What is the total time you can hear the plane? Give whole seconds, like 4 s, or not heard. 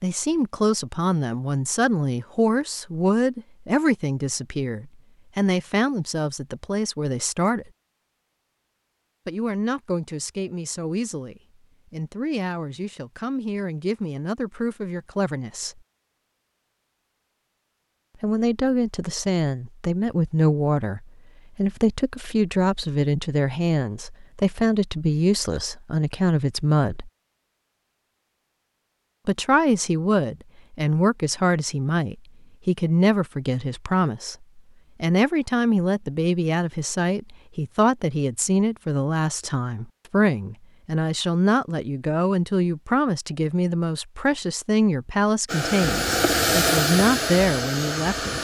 3 s.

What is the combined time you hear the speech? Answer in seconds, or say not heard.
42 s.